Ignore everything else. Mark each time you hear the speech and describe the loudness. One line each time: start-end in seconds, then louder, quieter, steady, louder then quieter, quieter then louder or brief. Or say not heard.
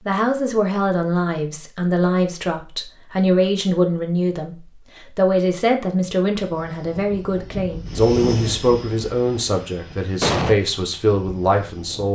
0.1-12.1 steady.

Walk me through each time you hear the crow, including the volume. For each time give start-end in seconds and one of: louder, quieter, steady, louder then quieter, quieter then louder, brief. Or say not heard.
not heard.